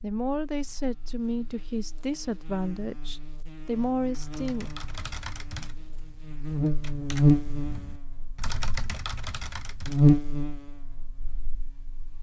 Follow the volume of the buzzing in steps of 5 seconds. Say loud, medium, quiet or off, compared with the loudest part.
quiet, loud, loud.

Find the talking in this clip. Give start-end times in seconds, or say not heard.
0.0-4.7.